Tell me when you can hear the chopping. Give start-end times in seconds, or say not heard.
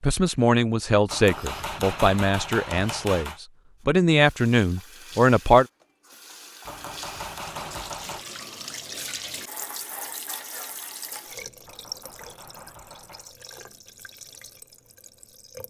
1.1-3.4, 6.7-8.2, 11.7-13.3.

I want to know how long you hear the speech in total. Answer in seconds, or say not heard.
6 s.